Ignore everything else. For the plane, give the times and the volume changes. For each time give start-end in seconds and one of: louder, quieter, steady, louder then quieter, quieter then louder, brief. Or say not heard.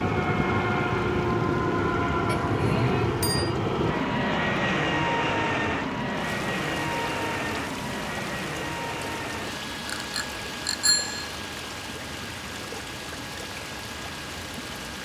0.0-15.0 quieter.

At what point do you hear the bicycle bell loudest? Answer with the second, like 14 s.
11 s.